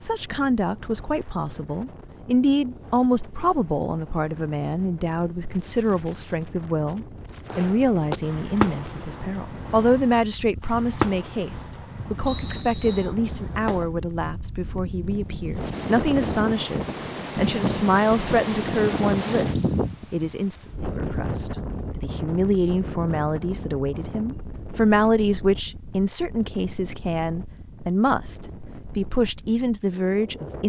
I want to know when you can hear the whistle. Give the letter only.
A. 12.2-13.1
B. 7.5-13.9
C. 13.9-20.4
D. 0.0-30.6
A.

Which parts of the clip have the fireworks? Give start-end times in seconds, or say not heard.
7.5-13.9.